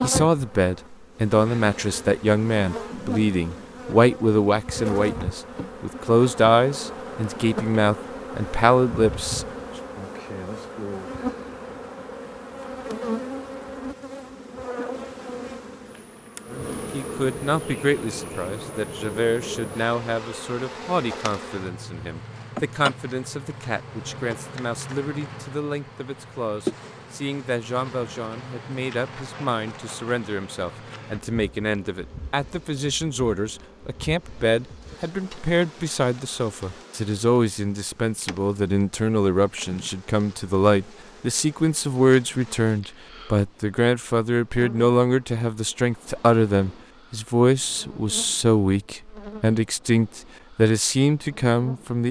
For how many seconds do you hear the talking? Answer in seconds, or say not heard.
45 s.